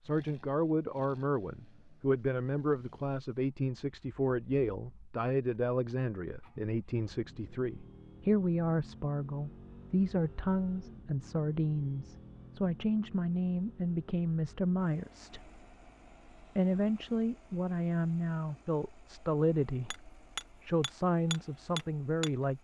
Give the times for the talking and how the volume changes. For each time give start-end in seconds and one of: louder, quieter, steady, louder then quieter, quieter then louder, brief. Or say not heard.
0.0-15.6 steady
16.4-22.5 steady.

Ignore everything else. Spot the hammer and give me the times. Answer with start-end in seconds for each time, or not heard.
19.9-22.3.